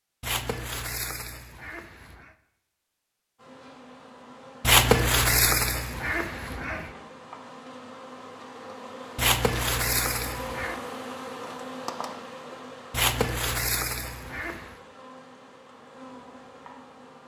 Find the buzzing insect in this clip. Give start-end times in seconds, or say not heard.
3.4-17.2.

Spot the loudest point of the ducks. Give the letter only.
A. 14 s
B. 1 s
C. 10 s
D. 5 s
D.